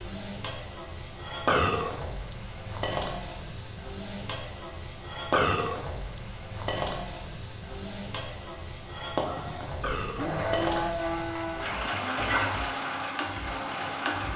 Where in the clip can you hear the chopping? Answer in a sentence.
The chopping can't be heard in this clip.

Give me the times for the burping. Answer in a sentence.
You can hear the burping from 1.4 to 1.9 s, from 5.3 to 5.8 s and from 9.8 to 10.3 s.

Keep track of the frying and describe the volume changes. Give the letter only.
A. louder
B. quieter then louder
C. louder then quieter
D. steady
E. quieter
D.